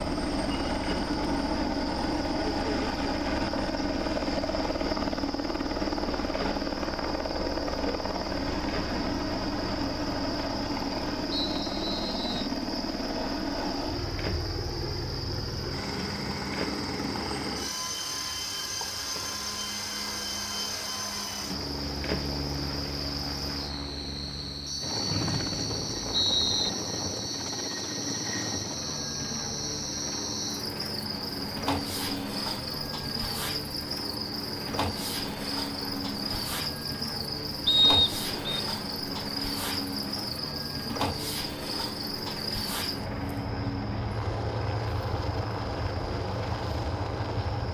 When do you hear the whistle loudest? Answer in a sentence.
The volume of the whistle peaks at 38 seconds.